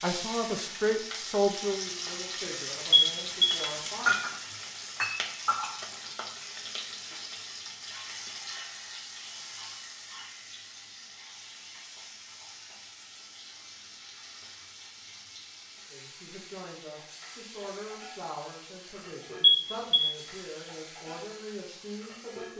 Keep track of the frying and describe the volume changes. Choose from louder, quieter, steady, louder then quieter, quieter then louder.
quieter.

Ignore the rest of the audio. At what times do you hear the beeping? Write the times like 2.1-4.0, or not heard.
2.9-3.6, 19.4-20.1.